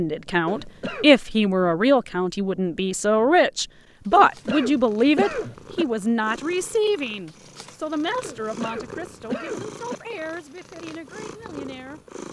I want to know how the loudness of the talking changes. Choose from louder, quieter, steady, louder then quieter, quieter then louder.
quieter.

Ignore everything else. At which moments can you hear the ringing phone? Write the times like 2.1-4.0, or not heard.
not heard.